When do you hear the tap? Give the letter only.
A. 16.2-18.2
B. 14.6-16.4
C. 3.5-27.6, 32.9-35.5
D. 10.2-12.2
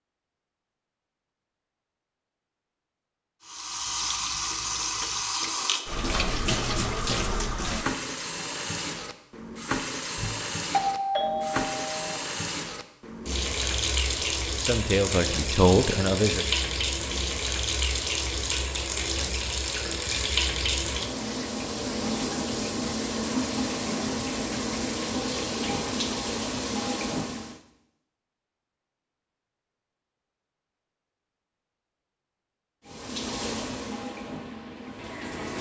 C.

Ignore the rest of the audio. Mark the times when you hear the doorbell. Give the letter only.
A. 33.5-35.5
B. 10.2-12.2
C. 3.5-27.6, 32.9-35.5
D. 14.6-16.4
B.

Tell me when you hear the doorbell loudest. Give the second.
11 s.